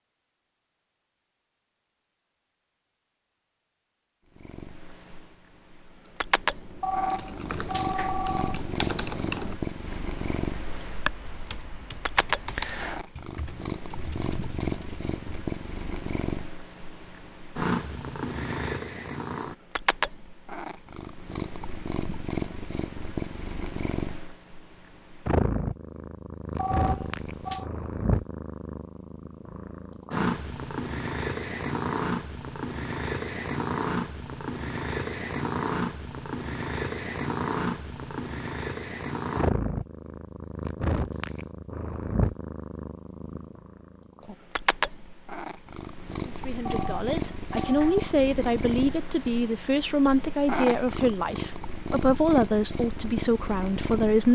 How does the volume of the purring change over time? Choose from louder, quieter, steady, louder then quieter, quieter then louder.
steady.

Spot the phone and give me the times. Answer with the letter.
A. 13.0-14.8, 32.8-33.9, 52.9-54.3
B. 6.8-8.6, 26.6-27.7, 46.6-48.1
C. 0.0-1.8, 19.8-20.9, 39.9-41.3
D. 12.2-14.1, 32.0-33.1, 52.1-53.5
B.